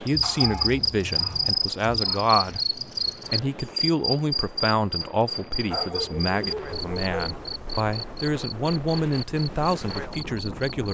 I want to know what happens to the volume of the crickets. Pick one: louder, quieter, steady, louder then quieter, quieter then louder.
quieter.